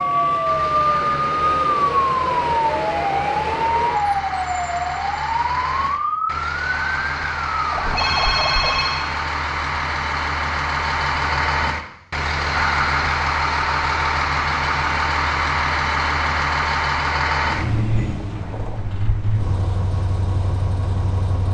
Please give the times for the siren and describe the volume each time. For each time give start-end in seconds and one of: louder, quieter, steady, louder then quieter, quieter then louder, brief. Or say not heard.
0.0-8.8 quieter.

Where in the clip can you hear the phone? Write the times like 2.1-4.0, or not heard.
8.0-9.1.